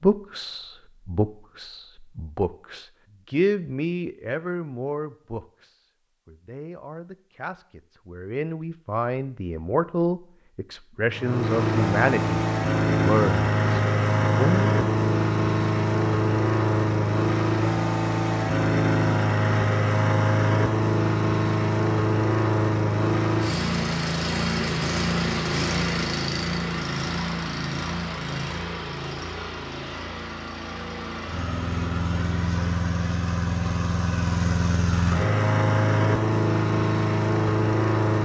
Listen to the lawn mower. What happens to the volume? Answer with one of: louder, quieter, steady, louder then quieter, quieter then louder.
quieter then louder.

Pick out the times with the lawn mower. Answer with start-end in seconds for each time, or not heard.
11.1-38.1.